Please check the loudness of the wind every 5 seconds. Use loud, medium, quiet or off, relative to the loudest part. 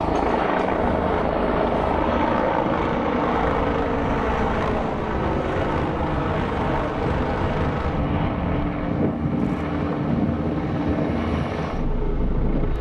medium, loud, loud.